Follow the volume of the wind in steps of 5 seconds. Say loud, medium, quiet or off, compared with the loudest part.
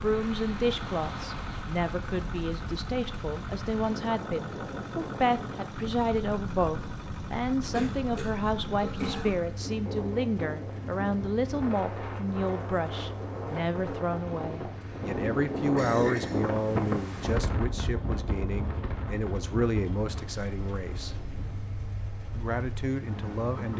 medium, medium, medium, loud, medium.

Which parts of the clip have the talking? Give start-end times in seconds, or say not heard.
0.0-21.1, 22.4-23.7.